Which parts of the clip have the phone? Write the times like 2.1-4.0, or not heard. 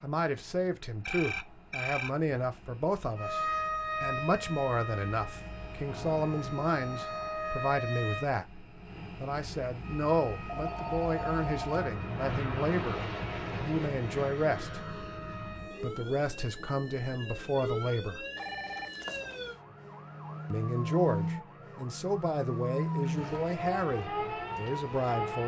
1.1-2.1, 10.4-11.9, 18.4-19.5.